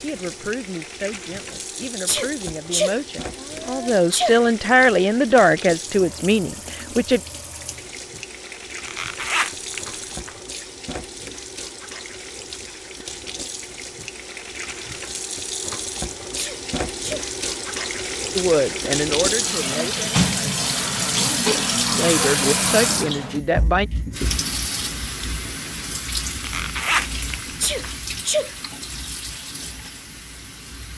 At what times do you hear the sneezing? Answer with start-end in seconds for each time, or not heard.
2.0-4.4, 16.4-17.3, 27.6-28.6.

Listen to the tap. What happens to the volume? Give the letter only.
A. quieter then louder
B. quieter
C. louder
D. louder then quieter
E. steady
D.